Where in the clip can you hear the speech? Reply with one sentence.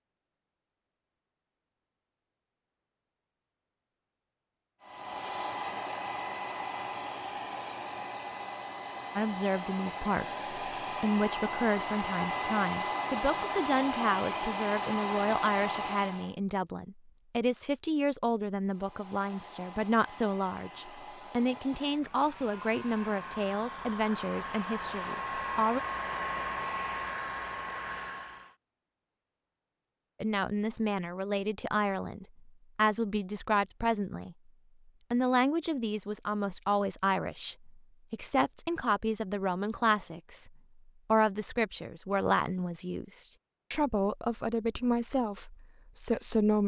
The speech can be heard from 9.2 to 25.8 s, from 30.2 to 34.4 s, from 35.1 to 40.5 s and from 41.1 to 46.6 s.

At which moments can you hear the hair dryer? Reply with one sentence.
The hair dryer can be heard from 4.8 to 16.4 s and from 18.6 to 28.6 s.